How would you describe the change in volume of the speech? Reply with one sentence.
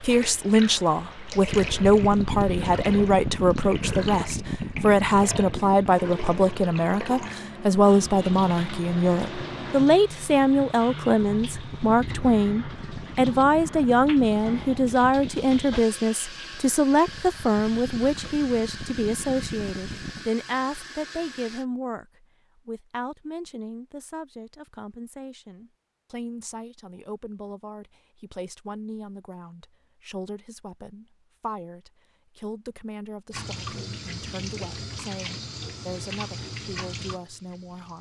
The loudness of the speech goes down.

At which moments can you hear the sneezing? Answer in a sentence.
You can't hear the sneezing here.